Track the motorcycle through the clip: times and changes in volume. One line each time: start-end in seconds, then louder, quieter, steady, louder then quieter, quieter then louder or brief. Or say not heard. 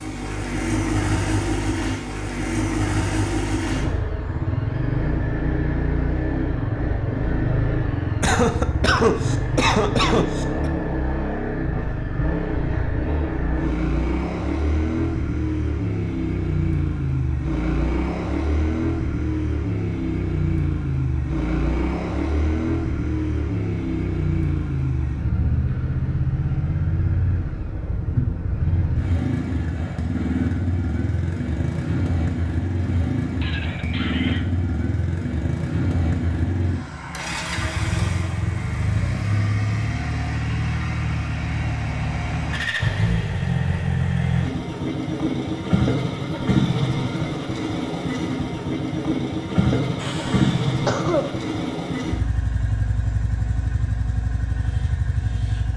0.0-55.7 steady.